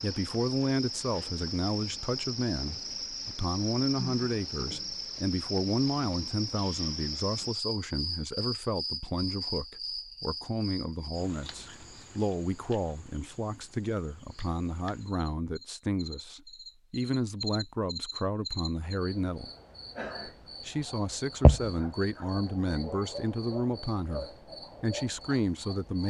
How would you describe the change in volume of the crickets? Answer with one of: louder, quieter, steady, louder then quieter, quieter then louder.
quieter then louder.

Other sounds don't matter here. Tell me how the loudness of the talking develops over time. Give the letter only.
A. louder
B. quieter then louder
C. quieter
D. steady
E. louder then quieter
D.